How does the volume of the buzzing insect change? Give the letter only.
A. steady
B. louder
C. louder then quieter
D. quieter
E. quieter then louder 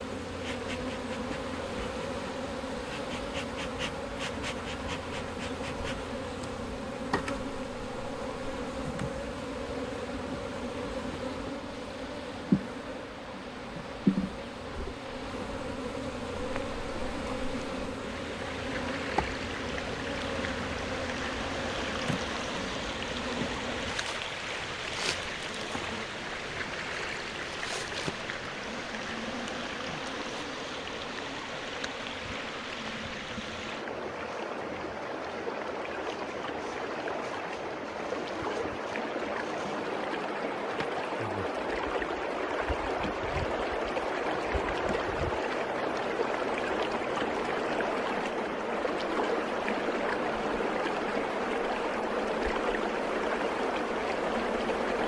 E.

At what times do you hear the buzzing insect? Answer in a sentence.
You can hear the buzzing insect from 0.0 to 55.0 s.